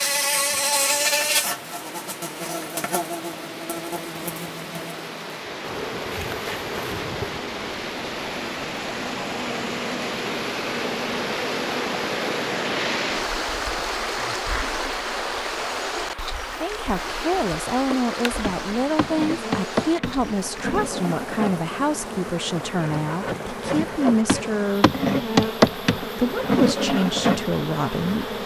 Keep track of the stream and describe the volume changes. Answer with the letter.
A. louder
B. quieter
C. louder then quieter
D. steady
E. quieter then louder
C.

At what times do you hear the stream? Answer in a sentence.
You can hear the stream from 0.0 to 28.4 s.